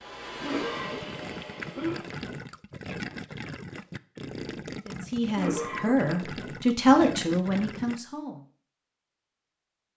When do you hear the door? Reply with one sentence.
The door can't be heard in this clip.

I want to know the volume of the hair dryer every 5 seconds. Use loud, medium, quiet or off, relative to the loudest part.
loud, off.